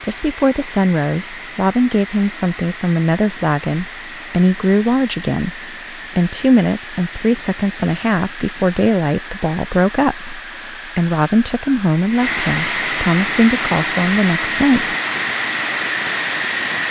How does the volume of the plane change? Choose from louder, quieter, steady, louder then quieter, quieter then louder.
louder.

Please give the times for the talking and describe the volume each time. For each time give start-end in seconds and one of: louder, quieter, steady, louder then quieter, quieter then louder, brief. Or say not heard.
0.0-14.9 steady.